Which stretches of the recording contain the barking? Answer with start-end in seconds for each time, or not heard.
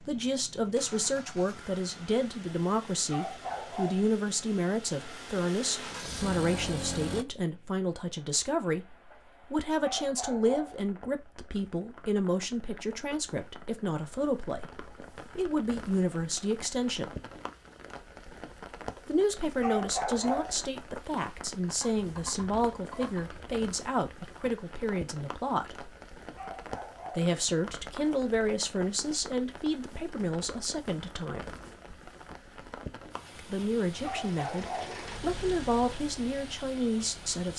3.0-4.1, 9.8-10.8, 19.6-20.6, 26.3-27.4, 34.0-35.0.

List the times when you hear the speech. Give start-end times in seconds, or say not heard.
0.0-17.1, 19.1-25.9, 27.1-31.4, 33.4-37.5.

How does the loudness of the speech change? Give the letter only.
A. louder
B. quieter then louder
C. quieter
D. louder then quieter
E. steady
E.